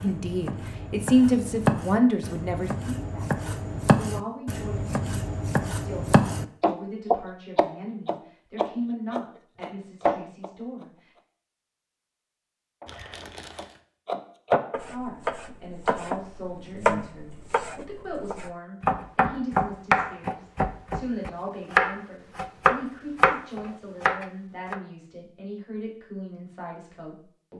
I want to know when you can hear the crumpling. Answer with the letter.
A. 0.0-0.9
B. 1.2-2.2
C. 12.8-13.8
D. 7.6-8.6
C.